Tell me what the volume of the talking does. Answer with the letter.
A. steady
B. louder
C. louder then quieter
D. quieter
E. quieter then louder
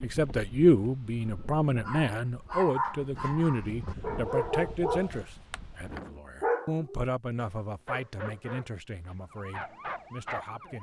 D.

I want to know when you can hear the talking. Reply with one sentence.
The talking can be heard from 0.0 to 10.7 s.